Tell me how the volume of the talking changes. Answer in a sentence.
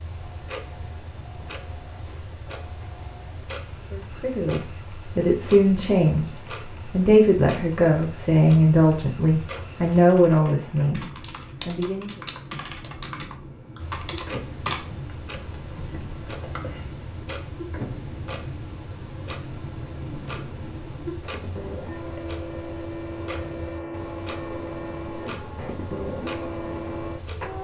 The volume of the talking stays about the same.